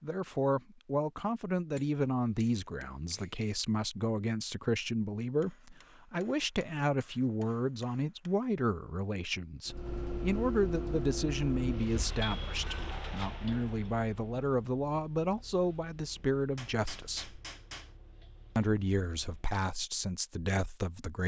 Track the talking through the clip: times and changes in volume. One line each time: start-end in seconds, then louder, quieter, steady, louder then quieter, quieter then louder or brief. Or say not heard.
0.0-17.4 steady
18.6-21.2 brief.